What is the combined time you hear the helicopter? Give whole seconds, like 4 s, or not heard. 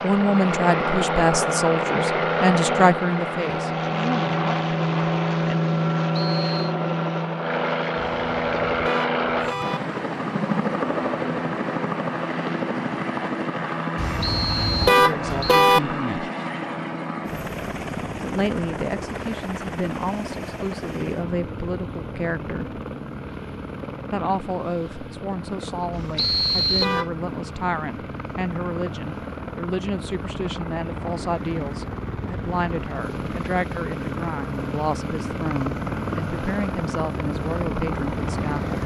39 s.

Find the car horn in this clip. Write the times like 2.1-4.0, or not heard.
8.0-9.8, 13.9-15.8, 25.9-27.1.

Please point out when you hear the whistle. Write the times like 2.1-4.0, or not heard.
6.1-6.5, 14.2-15.7, 26.1-26.9.